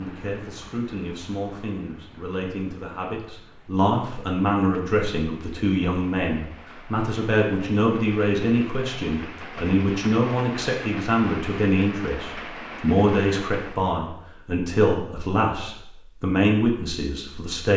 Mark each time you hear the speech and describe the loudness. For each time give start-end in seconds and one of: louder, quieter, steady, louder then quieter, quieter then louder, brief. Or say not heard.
0.0-17.7 louder.